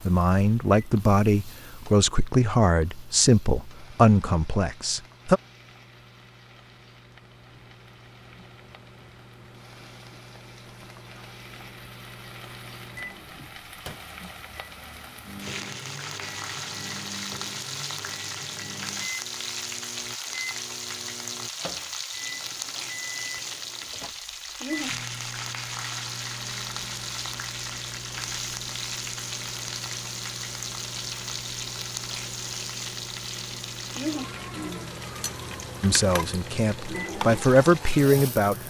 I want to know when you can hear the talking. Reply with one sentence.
You can hear the talking from 0.1 to 5.4 s and from 35.8 to 38.6 s.